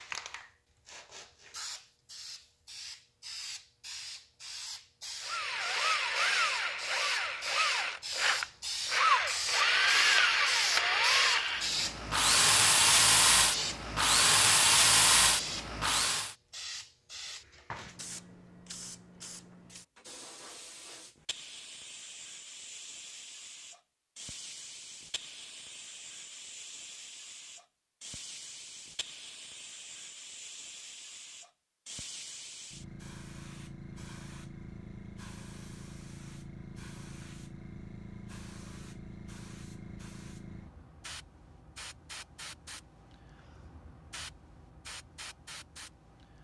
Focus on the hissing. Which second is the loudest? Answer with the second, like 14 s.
11 s.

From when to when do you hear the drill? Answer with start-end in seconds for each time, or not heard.
5.2-16.4.